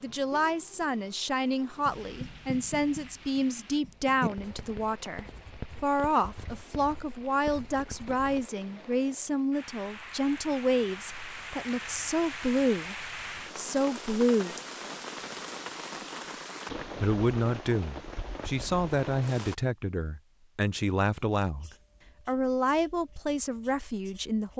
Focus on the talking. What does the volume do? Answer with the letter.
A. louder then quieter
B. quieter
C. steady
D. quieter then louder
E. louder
C.